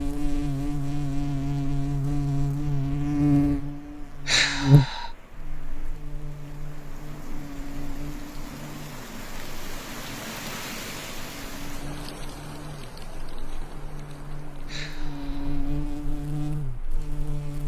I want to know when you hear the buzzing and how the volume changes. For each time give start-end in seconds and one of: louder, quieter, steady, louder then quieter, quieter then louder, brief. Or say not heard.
0.0-17.6 quieter then louder.